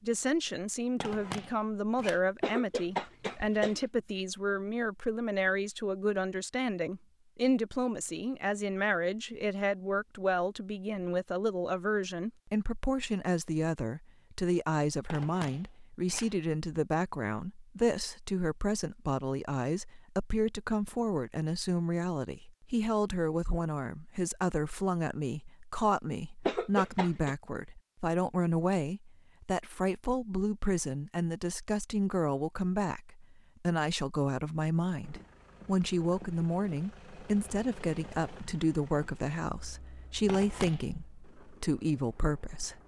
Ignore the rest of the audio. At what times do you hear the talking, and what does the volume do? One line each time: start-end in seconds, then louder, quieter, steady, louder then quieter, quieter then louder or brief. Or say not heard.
0.0-42.8 steady.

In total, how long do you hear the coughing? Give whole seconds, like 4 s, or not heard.
2 s.